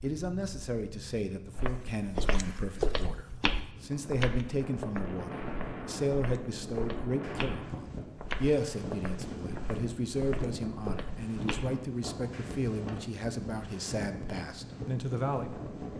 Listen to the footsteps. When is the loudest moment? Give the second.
3 s.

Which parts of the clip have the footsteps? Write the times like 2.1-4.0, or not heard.
1.6-11.8.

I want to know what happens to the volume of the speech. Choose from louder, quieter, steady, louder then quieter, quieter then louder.
steady.